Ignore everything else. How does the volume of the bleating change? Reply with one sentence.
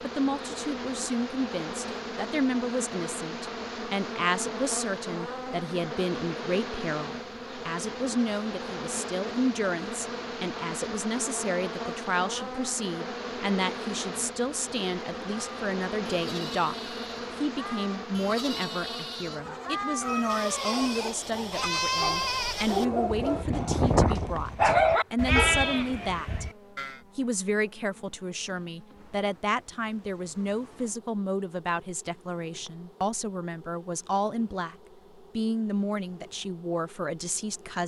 The loudness of the bleating goes up.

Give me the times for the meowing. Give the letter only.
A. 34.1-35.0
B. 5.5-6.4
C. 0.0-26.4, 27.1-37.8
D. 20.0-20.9
D.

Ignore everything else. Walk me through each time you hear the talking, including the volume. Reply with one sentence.
You can hear the talking from 0.0 to 26.4 s, at a steady volume; and from 27.1 to 37.8 s, at a steady volume.